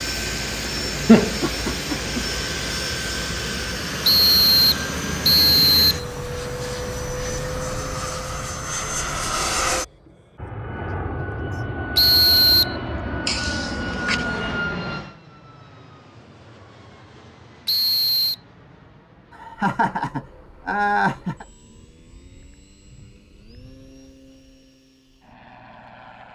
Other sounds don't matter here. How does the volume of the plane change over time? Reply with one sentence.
The loudness of the plane goes down.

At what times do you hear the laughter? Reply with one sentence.
The laughter can be heard from 1.1 to 2.2 s, from 13.2 to 14.4 s and from 19.4 to 21.4 s.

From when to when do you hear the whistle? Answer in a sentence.
The whistle can be heard from 4.0 to 6.0 s, from 11.9 to 12.8 s and from 17.6 to 18.4 s.